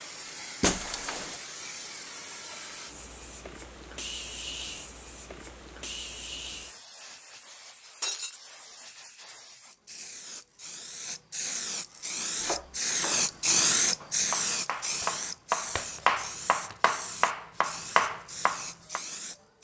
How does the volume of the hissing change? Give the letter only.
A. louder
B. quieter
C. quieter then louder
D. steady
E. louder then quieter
E.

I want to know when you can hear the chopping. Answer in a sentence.
You can hear the chopping from 12.4 to 19.0 s.